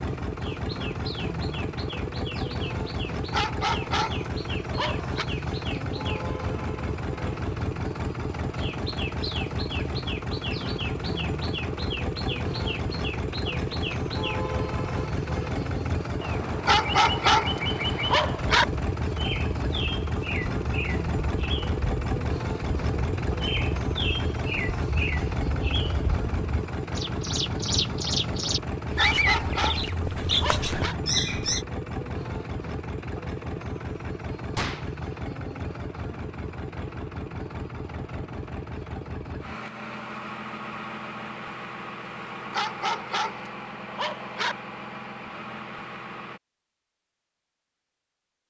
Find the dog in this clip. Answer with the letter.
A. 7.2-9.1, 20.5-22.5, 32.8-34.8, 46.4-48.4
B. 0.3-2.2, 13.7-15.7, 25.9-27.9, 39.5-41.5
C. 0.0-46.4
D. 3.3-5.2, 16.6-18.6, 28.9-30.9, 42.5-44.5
D.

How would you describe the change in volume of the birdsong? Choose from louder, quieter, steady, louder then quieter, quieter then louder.
louder.